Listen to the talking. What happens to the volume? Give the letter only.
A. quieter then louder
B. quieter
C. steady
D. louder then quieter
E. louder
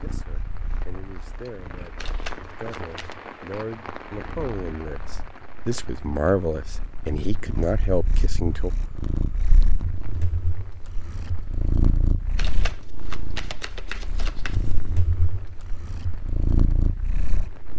E.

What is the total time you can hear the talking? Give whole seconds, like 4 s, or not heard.
9 s.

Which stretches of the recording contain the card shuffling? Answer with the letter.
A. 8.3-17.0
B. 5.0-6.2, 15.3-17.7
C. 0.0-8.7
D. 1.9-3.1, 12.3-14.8
D.